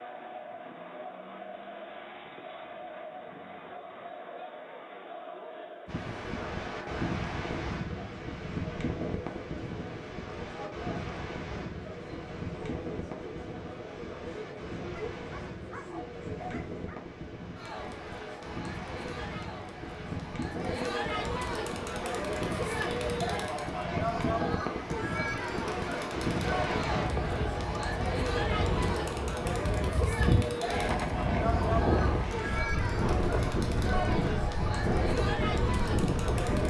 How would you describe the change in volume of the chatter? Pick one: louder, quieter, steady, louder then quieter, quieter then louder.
louder.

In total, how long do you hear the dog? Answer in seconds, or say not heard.
2 s.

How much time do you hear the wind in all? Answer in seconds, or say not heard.
31 s.